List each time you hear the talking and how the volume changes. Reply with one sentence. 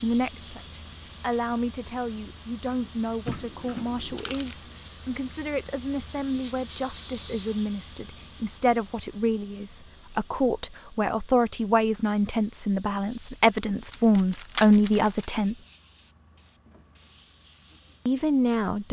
You can hear the talking from 0.0 to 15.6 s, getting louder; and briefly from 18.1 to 18.8 s.